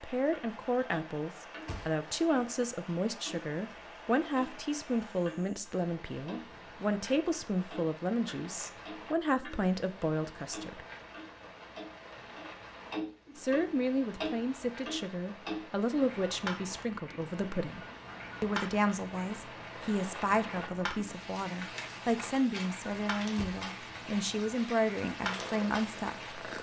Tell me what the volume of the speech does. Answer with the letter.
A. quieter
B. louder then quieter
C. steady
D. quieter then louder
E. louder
C.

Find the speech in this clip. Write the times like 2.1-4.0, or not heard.
0.0-10.8, 13.3-26.4.